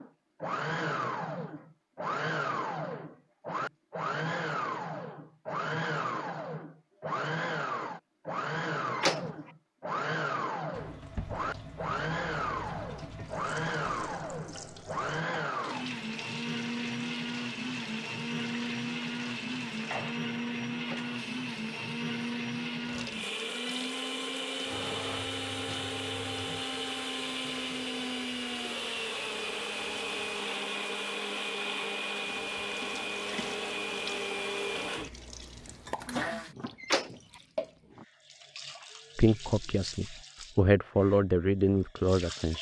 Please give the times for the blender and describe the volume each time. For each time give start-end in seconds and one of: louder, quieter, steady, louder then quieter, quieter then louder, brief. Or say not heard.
0.0-36.5 steady.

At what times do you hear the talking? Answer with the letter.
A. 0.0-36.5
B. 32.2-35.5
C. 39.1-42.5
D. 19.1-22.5
C.